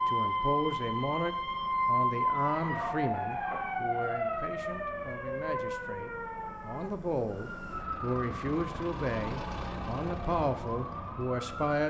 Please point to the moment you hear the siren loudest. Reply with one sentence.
The volume of the siren peaks at 2 seconds.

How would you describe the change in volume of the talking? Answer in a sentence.
The volume of the talking goes down, then up.